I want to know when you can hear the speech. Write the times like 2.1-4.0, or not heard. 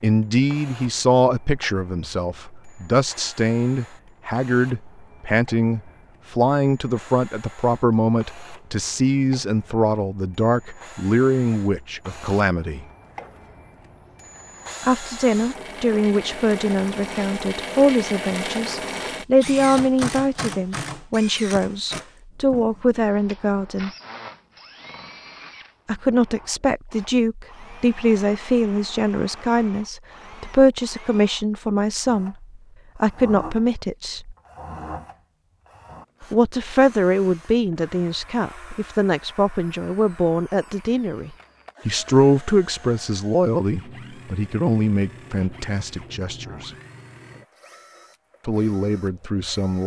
0.0-12.8, 14.8-23.9, 25.9-34.4, 36.2-46.7, 48.5-49.8.